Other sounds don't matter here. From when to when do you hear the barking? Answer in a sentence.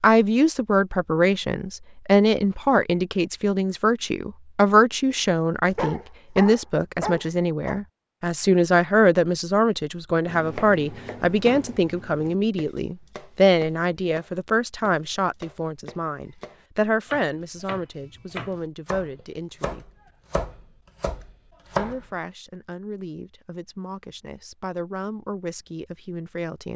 The barking can be heard from 5.7 to 7.8 s.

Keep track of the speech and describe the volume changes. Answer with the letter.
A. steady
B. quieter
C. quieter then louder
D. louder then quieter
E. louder
B.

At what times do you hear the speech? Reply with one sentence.
You can hear the speech from 0.0 to 19.9 s and from 21.8 to 26.7 s.